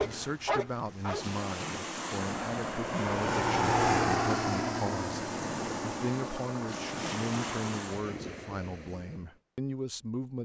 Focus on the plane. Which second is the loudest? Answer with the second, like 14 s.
4 s.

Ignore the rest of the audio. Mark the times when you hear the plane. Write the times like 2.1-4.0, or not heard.
2.1-7.8.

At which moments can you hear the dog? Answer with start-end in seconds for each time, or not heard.
0.0-1.4.